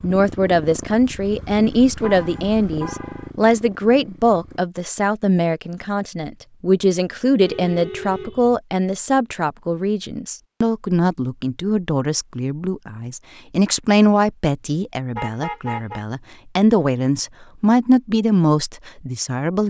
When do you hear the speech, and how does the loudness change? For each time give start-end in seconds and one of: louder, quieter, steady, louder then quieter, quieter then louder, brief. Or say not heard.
0.0-19.6 steady.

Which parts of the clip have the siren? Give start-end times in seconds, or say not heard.
not heard.